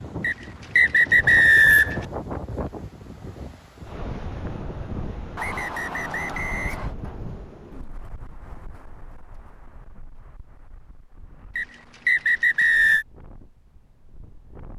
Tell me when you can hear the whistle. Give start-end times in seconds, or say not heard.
0.2-2.0, 5.3-7.0, 11.6-13.1.